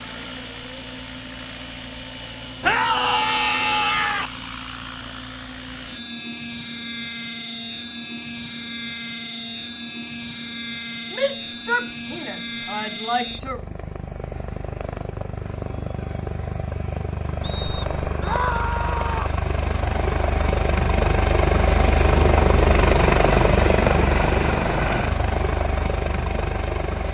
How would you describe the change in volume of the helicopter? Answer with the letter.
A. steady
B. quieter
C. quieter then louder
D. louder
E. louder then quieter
D.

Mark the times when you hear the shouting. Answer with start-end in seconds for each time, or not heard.
2.6-4.3, 11.1-13.6, 18.2-19.4.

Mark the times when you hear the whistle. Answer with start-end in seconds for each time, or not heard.
17.4-18.4.